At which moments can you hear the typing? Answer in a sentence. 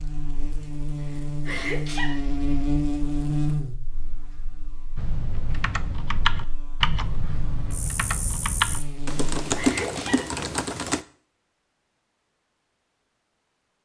The typing can be heard from 5.0 to 11.1 s.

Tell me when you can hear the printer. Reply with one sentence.
You can't hear the printer here.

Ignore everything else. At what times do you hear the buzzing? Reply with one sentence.
You can hear the buzzing from 0.0 to 9.6 s.